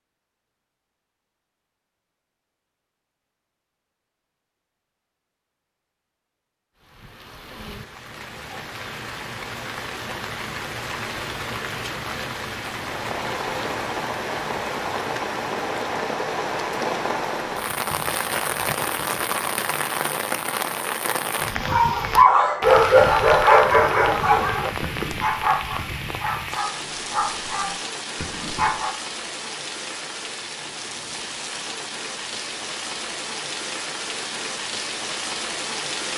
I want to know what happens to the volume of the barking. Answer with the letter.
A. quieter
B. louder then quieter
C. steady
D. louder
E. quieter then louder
A.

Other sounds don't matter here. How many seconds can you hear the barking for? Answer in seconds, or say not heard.
7 s.